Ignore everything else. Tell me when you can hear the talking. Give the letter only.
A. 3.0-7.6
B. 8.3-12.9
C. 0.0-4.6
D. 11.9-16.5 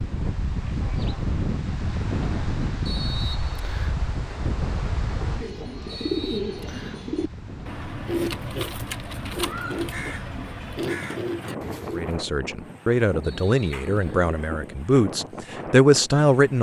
D.